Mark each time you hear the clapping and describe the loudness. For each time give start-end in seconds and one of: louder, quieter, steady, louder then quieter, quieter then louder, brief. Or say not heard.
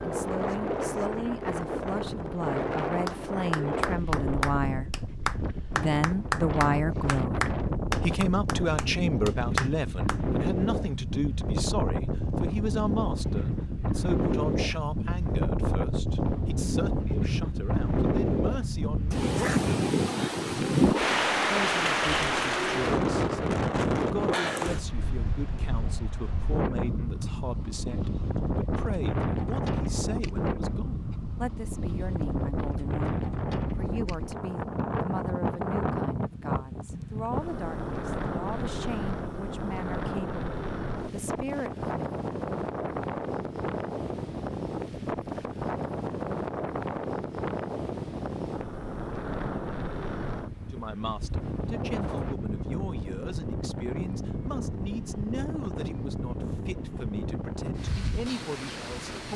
3.0-10.2 steady.